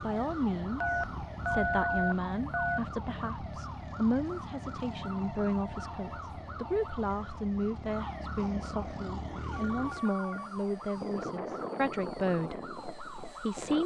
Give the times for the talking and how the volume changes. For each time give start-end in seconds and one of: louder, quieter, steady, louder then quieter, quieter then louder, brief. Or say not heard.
0.0-13.8 steady.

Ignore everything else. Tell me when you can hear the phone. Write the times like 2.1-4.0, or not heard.
0.8-2.8, 5.0-6.9, 9.5-10.5.